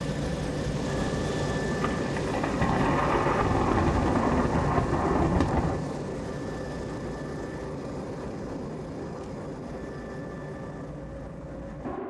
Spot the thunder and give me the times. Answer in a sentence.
The thunder can be heard from 1.8 to 5.8 s.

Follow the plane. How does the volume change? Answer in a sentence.
The volume of the plane goes down.